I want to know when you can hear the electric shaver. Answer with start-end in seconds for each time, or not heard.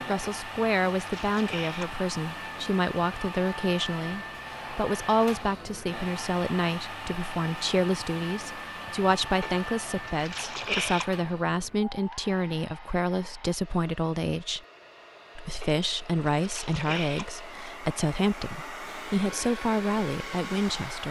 not heard.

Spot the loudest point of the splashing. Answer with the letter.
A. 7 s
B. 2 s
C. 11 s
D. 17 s
C.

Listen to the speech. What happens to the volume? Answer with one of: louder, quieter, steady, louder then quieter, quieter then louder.
steady.